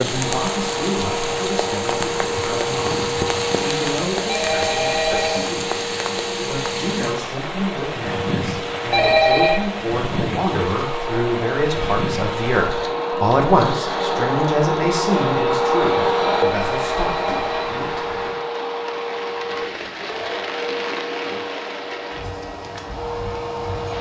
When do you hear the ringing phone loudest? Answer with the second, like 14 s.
9 s.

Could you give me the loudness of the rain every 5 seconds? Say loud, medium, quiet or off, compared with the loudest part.
loud, loud, loud, medium, medium.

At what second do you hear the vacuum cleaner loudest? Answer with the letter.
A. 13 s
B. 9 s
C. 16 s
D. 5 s
C.